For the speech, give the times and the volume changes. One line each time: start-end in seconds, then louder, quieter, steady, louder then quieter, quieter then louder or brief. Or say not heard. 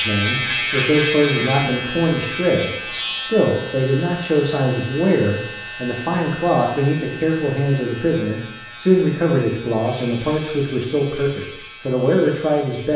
0.0-12.9 steady.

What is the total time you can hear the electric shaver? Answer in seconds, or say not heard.
13 s.